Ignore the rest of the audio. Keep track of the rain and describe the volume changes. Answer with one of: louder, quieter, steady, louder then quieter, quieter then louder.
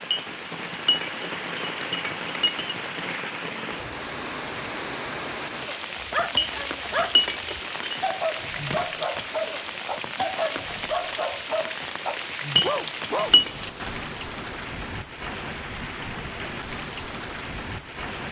steady.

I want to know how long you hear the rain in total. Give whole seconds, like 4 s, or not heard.
18 s.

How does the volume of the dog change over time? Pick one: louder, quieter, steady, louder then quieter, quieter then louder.
steady.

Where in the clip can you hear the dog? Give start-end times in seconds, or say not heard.
6.0-13.3.